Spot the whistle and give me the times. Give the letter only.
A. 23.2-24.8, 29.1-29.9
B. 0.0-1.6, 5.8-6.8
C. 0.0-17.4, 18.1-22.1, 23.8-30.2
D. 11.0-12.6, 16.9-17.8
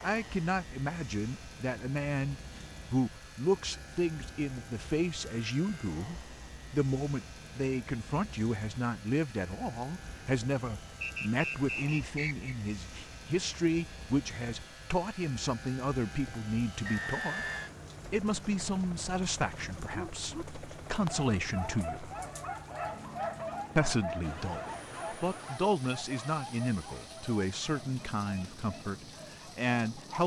D.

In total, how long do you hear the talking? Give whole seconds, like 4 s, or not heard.
28 s.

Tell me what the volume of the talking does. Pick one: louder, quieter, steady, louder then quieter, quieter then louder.
steady.